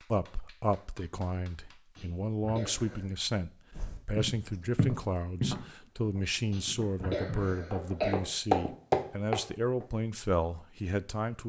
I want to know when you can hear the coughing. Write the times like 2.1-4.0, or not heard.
1.9-3.0, 6.5-8.2.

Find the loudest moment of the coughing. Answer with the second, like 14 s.
8 s.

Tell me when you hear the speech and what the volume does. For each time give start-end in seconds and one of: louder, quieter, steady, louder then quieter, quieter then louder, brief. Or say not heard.
0.1-11.4 steady.